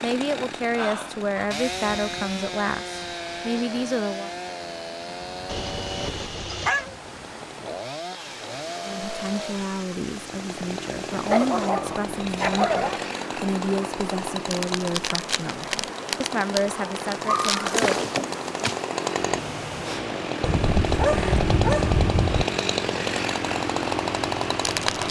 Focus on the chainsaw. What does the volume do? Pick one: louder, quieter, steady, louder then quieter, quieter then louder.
louder.